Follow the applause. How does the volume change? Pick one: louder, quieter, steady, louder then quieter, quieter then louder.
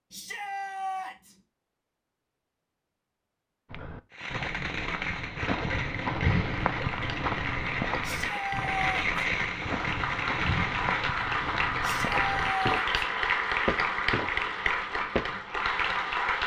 louder.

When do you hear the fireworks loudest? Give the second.
9 s.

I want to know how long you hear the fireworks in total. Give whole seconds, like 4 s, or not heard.
7 s.